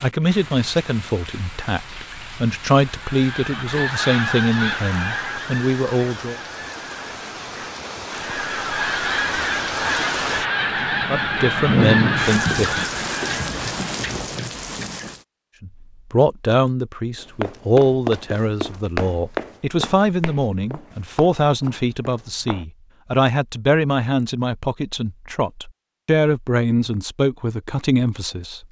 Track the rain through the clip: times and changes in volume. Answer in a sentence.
The rain can be heard from 0.0 to 15.2 s, getting louder.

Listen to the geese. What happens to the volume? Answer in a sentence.
The volume of the geese goes down, then up.